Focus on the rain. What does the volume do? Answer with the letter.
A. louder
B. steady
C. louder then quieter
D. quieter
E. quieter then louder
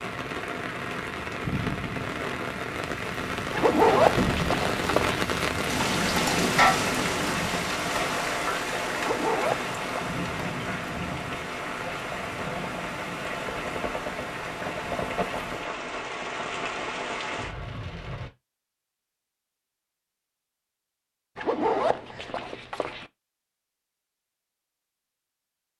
C.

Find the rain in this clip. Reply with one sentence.
You can hear the rain from 0.0 to 18.3 s.